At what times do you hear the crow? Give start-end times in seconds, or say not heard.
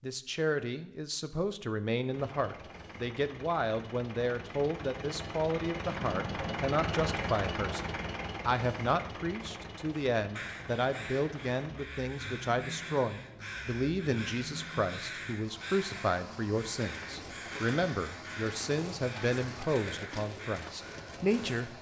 10.3-21.7.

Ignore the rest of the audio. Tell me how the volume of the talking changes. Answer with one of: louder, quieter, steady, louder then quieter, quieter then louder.
steady.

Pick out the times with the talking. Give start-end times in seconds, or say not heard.
0.0-21.7.